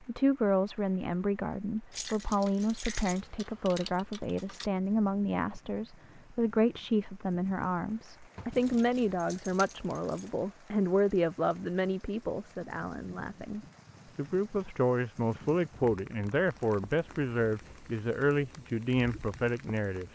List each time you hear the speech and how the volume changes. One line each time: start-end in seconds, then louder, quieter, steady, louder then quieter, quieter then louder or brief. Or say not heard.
0.0-20.1 steady.